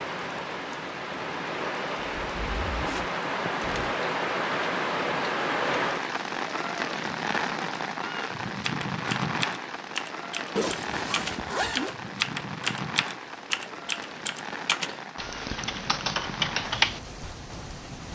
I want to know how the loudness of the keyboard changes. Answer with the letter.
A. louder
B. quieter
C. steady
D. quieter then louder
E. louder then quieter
A.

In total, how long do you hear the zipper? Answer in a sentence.
You can hear the zipper for 3 seconds altogether.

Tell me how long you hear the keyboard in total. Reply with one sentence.
The keyboard can be heard for 9 seconds in total.